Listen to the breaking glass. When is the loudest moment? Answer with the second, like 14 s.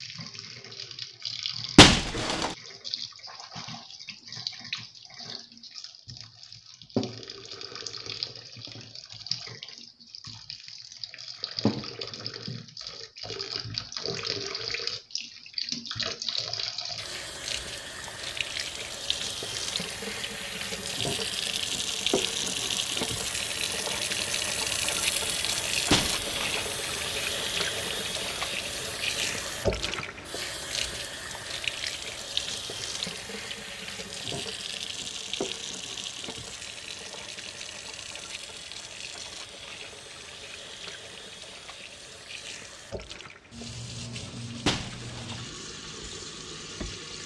2 s.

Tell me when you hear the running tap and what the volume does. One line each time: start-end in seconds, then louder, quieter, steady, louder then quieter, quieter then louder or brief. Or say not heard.
0.0-47.2 louder then quieter.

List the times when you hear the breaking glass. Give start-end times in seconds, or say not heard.
1.8-2.5, 25.9-26.6, 44.6-45.4.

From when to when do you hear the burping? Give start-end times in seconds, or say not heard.
not heard.